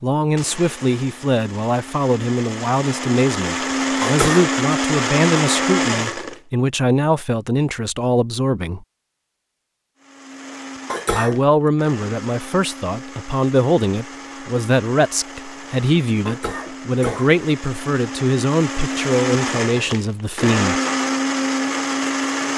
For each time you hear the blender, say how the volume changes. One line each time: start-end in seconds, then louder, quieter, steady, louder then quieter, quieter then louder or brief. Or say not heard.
0.1-6.4 louder
9.9-22.5 louder.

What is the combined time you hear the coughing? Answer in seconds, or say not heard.
2 s.